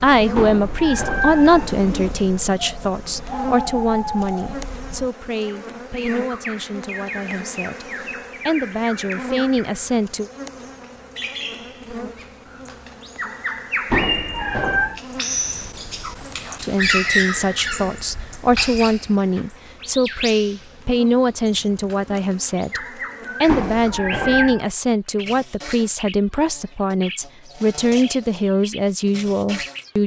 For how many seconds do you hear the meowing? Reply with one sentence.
The meowing can be heard for 4 seconds in total.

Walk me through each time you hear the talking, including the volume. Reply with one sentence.
You can hear the talking from 0.0 to 10.3 s, getting quieter then louder; and from 16.6 to 30.0 s, at a steady volume.